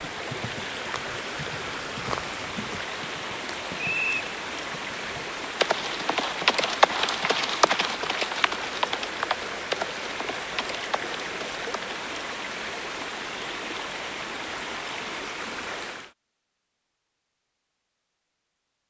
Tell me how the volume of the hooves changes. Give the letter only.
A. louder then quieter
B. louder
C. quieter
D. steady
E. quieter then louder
A.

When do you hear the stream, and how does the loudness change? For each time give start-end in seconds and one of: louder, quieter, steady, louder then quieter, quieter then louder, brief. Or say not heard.
0.0-16.1 steady.